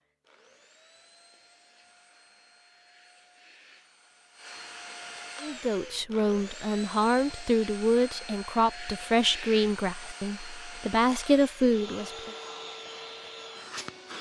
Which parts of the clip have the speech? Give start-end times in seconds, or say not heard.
5.4-12.3.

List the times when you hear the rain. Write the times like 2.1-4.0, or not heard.
not heard.